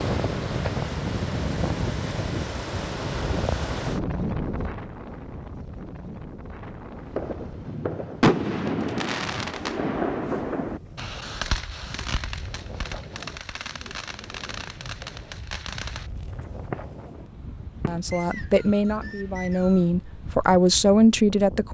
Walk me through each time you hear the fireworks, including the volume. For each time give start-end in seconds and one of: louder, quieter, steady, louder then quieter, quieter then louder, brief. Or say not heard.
7.1-18.4 quieter.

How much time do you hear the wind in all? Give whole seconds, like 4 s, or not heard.
22 s.